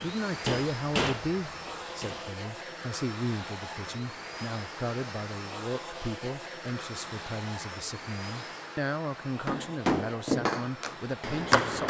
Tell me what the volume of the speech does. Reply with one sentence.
The volume of the speech stays about the same.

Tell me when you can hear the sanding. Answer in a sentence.
You can't hear the sanding here.